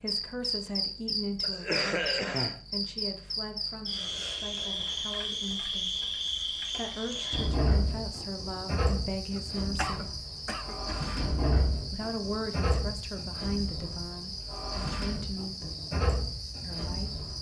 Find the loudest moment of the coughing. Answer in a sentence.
The volume of the coughing peaks at 2 seconds.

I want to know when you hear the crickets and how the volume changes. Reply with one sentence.
You can hear the crickets from 0.0 to 17.3 s, at a steady volume.